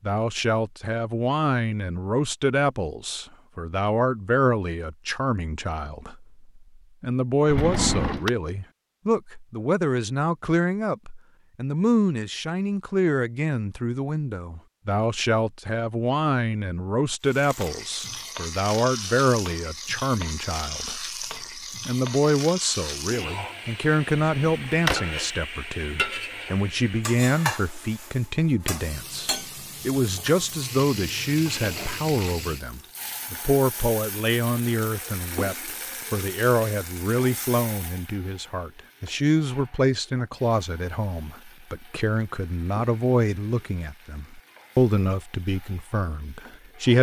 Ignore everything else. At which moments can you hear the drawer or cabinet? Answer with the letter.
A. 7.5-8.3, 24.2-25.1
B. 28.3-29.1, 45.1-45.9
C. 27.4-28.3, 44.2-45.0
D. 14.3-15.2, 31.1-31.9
A.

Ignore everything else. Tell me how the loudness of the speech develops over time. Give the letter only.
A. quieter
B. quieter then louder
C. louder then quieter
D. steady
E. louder
D.